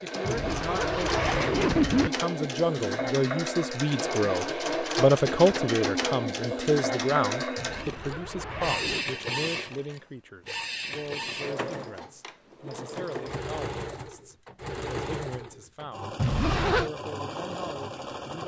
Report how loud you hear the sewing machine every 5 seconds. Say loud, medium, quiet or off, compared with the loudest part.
loud, loud, medium, medium.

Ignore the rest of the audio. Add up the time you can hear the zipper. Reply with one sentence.
You can hear the zipper for 4 seconds altogether.